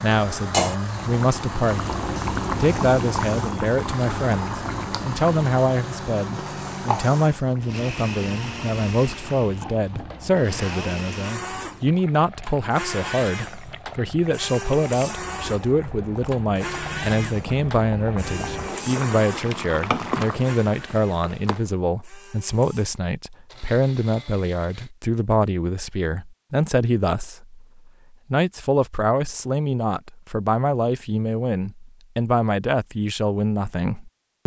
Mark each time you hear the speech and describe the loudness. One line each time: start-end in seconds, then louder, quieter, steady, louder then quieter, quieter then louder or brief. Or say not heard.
0.0-1.9 brief
2.6-34.4 steady.